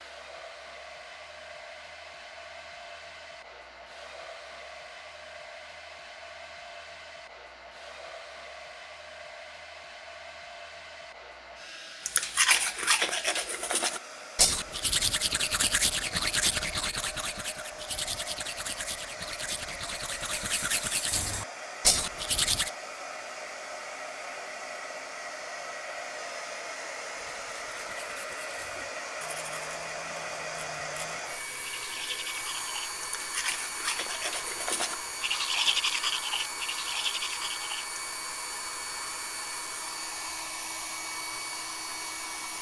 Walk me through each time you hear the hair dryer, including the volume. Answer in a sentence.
You can hear the hair dryer from 0.0 to 42.5 s, getting louder.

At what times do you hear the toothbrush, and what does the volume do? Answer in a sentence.
You can hear the toothbrush from 12.1 to 22.7 s, getting quieter then louder; and from 27.1 to 38.0 s, getting louder.